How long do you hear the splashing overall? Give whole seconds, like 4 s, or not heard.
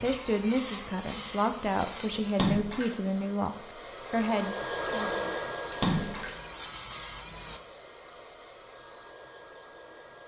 2 s.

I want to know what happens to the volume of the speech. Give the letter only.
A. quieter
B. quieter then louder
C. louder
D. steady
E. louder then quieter
D.